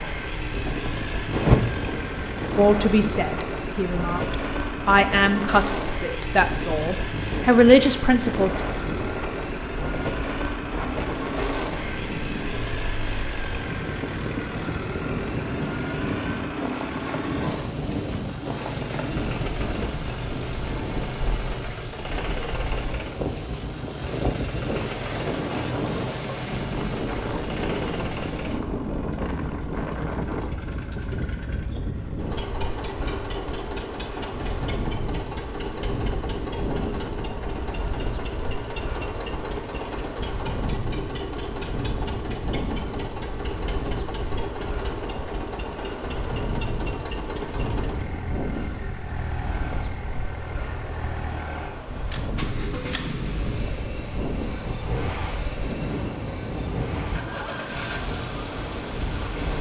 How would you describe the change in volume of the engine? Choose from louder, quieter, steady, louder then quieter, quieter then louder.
steady.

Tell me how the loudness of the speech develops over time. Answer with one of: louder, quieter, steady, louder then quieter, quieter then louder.
louder.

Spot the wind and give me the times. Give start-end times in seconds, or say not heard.
0.0-59.5.